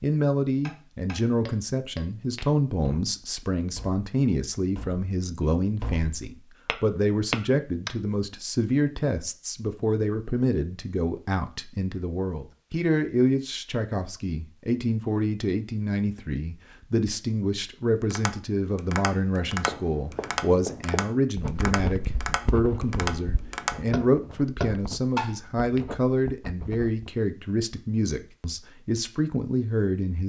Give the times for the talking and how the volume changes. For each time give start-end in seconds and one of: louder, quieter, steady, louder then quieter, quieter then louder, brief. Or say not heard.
0.0-30.2 steady.